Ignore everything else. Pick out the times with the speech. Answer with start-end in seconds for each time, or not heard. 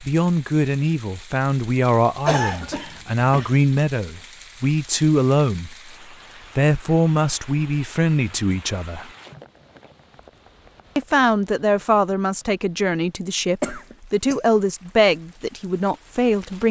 0.0-5.9, 6.5-9.1, 10.9-16.6.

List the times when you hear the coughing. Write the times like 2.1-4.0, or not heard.
2.2-3.5, 13.6-14.4.